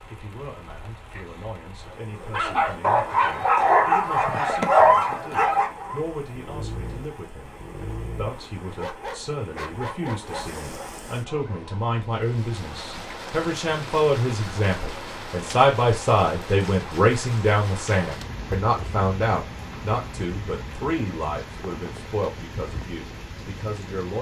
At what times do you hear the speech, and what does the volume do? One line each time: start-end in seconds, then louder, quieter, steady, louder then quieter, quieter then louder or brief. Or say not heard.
0.1-24.1 louder then quieter.